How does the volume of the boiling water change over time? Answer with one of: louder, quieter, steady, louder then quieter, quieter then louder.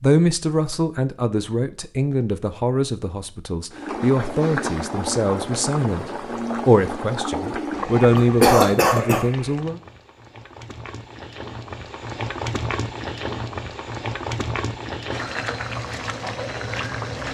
quieter then louder.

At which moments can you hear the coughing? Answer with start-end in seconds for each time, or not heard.
8.2-9.2.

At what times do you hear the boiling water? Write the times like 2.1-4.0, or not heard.
3.7-17.2.